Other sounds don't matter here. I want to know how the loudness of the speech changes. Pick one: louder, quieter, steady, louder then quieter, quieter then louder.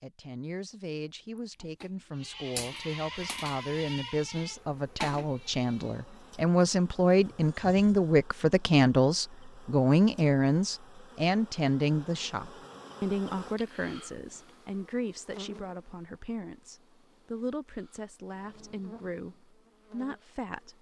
louder then quieter.